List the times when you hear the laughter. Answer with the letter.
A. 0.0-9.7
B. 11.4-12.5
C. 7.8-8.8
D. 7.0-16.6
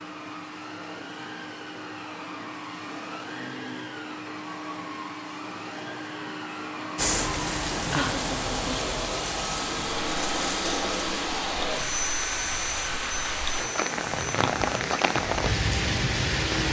C.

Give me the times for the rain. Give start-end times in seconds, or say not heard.
7.0-16.6.